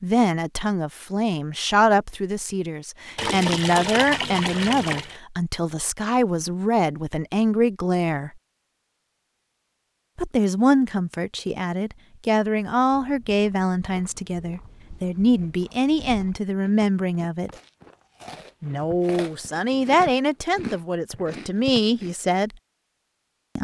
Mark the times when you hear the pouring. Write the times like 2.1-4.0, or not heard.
3.1-5.2.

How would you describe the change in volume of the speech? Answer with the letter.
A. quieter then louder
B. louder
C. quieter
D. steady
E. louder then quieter
D.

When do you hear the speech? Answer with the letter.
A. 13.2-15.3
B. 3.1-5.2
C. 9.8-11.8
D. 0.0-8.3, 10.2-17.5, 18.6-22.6
D.